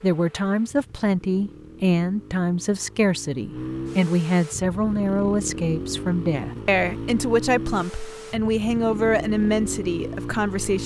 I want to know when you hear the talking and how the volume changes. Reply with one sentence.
You can hear the talking from 0.0 to 10.8 s, at a steady volume.